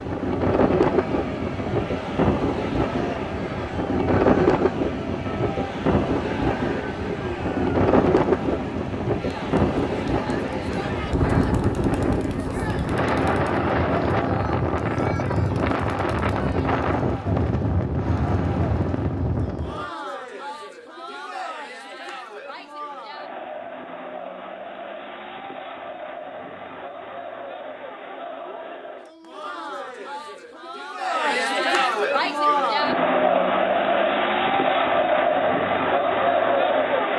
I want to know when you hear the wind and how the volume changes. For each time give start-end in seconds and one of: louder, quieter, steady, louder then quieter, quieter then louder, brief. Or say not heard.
0.0-19.9 steady.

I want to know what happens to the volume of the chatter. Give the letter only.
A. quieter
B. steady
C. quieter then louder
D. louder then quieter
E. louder
E.